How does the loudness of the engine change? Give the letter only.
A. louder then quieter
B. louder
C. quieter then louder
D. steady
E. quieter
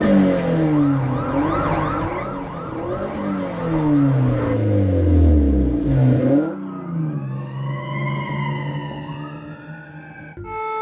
C.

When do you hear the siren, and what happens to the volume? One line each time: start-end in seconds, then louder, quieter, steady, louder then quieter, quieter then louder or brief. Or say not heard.
0.0-4.5 louder then quieter
6.3-10.7 quieter.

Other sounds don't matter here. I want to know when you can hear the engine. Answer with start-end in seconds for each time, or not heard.
0.0-6.5.